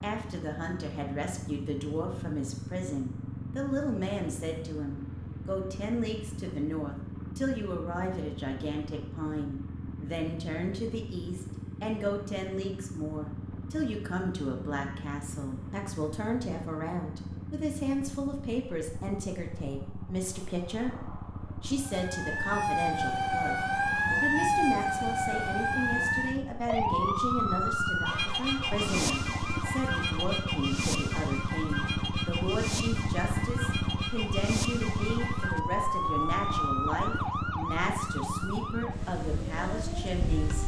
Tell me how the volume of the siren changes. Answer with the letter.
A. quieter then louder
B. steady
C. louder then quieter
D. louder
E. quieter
E.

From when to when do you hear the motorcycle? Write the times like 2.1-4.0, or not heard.
0.0-40.6.